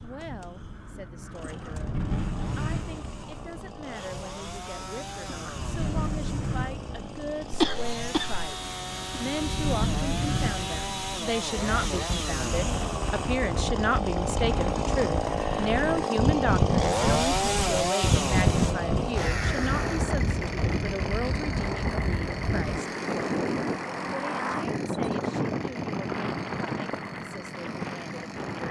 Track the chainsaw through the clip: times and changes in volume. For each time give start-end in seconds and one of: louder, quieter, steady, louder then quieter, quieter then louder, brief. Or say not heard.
0.0-28.6 louder then quieter.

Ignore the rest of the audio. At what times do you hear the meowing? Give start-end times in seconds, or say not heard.
not heard.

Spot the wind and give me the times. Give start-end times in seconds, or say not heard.
0.0-28.6.